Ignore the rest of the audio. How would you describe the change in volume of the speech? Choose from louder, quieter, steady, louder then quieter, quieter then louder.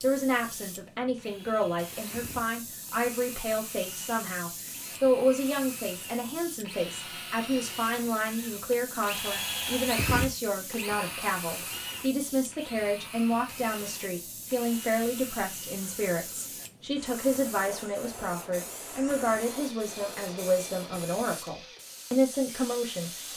steady.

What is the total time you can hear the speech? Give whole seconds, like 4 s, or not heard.
23 s.